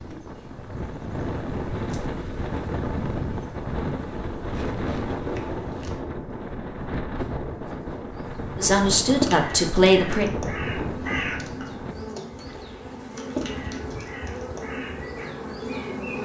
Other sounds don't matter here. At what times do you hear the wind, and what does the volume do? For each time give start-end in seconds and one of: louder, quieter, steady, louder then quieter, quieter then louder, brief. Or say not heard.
0.0-11.9 steady.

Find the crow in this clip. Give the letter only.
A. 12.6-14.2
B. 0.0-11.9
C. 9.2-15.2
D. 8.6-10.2
C.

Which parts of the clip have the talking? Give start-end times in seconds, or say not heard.
8.6-10.2.